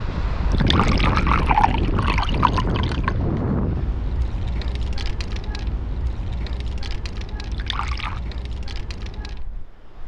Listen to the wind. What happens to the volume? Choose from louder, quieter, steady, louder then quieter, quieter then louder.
quieter.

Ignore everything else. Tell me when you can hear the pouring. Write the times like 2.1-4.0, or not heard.
0.5-3.1, 7.5-8.2.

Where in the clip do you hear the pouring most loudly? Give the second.
1 s.